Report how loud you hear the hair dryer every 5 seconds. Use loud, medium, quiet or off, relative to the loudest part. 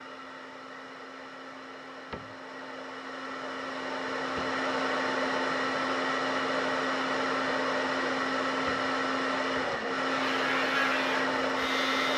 medium, loud, loud.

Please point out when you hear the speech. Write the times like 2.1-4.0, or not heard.
not heard.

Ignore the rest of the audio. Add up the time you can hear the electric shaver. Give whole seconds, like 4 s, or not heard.
2 s.